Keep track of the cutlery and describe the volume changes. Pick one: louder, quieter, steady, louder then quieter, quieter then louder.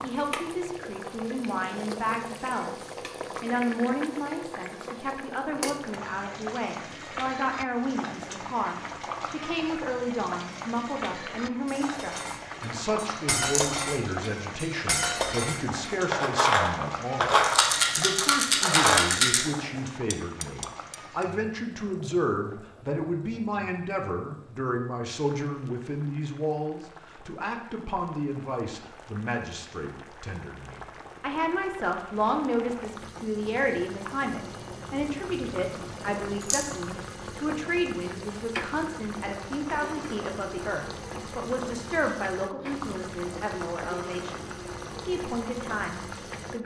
louder then quieter.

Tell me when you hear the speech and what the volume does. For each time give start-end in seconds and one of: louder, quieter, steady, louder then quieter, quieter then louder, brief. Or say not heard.
0.0-46.6 steady.